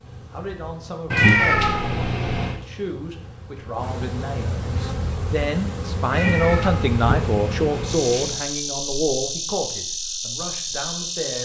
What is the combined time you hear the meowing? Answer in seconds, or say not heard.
4 s.